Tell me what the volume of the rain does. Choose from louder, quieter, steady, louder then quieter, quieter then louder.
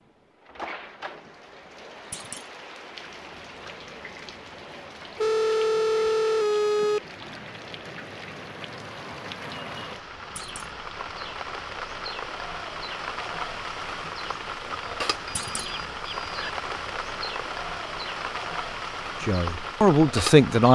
louder.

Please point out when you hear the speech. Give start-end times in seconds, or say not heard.
19.2-20.7.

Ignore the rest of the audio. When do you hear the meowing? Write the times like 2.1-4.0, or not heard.
not heard.